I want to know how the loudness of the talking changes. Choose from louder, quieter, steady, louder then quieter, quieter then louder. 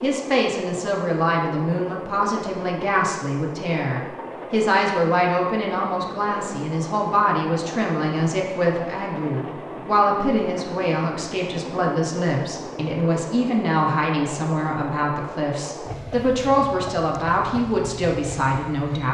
steady.